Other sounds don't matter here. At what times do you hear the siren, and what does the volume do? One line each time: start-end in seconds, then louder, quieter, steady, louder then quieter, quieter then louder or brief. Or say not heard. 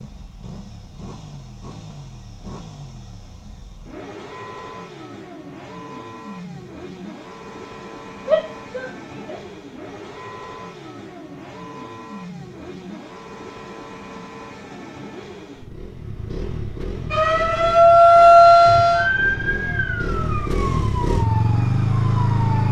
17.1-22.6 quieter.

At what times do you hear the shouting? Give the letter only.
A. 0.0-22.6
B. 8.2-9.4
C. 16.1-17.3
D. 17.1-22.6
B.